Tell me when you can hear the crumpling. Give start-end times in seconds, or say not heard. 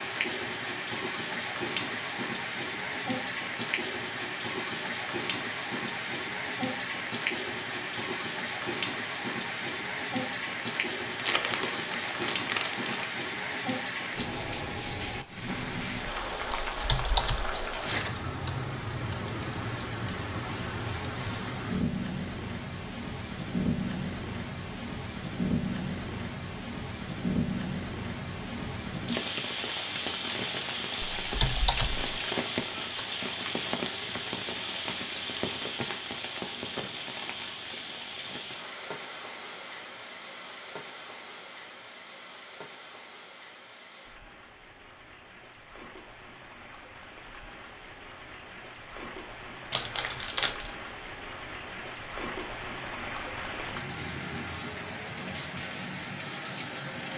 11.2-13.1, 49.7-50.7.